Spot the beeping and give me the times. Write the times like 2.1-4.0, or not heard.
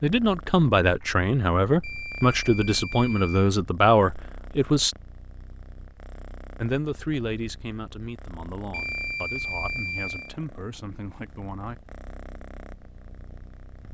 1.8-3.5, 8.7-10.3.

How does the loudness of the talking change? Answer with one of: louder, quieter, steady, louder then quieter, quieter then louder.
quieter.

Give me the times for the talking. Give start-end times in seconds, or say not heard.
0.0-5.0, 6.6-11.8.